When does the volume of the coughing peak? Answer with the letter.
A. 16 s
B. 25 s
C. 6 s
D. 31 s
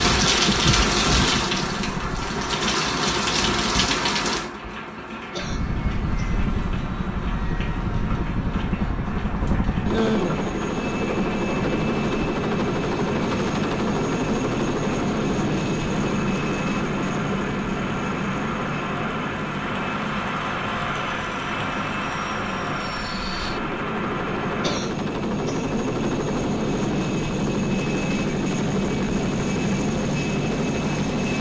B.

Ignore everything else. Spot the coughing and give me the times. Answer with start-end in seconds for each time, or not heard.
5.3-6.4, 24.6-25.7.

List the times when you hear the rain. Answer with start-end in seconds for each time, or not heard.
0.0-24.8.